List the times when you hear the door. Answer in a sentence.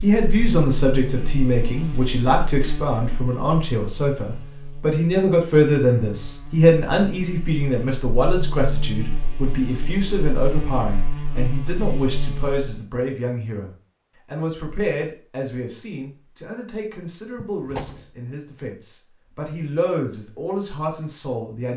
You can hear the door from 17.4 to 18.1 s.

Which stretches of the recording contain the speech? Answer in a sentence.
You can hear the speech from 0.0 to 21.7 s.